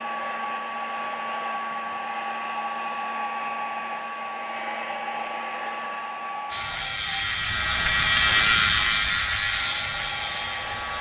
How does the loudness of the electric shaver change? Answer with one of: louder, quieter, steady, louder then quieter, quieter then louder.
louder then quieter.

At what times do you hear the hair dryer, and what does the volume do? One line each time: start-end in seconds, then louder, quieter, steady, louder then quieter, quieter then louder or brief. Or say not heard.
0.0-10.9 quieter.